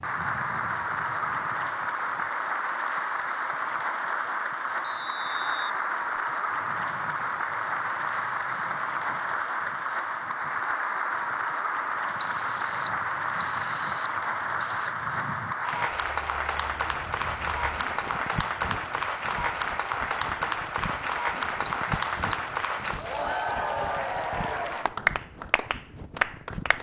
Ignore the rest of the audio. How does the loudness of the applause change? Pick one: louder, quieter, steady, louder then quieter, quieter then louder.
steady.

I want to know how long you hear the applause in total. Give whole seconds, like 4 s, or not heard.
27 s.